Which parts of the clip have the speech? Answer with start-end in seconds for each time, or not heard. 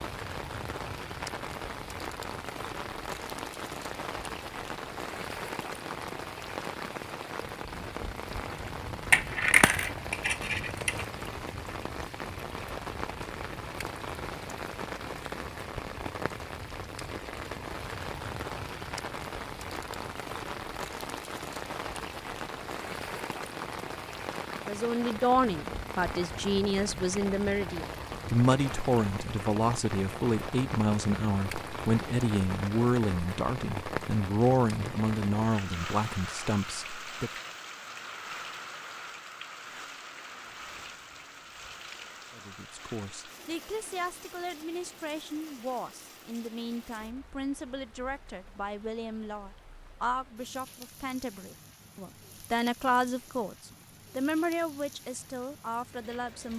24.6-37.3, 42.3-56.5.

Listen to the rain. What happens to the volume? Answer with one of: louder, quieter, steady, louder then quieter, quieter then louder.
quieter.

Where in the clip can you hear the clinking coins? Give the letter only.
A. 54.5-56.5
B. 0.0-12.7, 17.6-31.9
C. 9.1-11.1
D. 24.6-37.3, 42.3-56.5
C.